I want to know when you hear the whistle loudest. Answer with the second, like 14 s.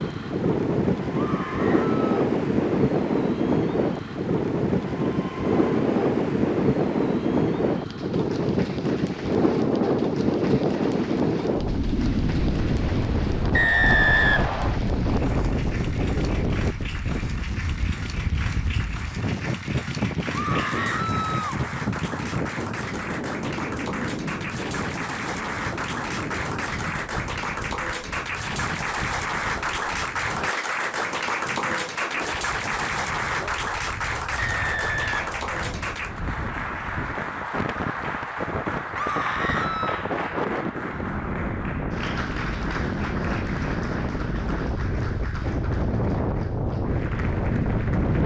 14 s.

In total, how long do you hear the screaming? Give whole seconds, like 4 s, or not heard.
3 s.